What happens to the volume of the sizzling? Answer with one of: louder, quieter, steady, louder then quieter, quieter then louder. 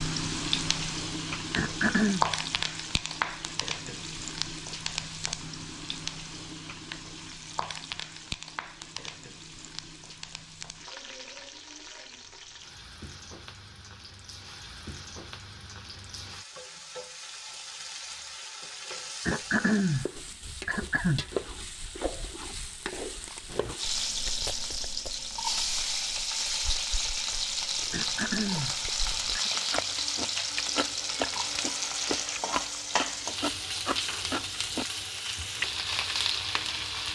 quieter then louder.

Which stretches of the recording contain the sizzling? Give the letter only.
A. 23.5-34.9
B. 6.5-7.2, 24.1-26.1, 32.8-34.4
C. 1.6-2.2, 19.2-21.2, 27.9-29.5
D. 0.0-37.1
D.